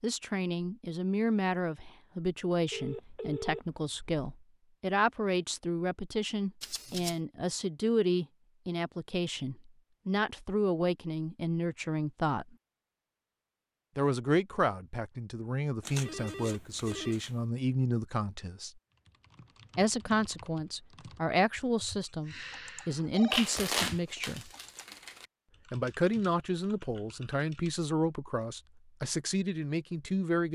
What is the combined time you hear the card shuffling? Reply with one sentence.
The card shuffling can be heard for 4 seconds in total.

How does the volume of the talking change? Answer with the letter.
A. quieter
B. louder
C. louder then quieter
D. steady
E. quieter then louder
D.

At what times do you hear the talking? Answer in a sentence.
You can hear the talking from 0.0 to 12.4 s, from 13.9 to 18.7 s, from 19.8 to 24.5 s and from 25.7 to 30.5 s.